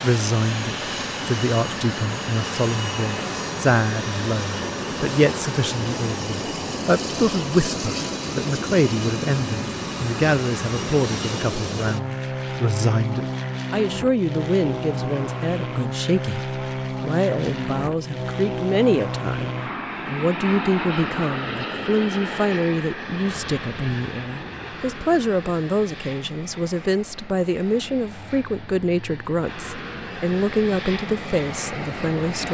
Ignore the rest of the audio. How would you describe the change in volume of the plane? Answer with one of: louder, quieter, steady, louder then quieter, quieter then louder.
quieter.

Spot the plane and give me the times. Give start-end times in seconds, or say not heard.
0.0-32.4.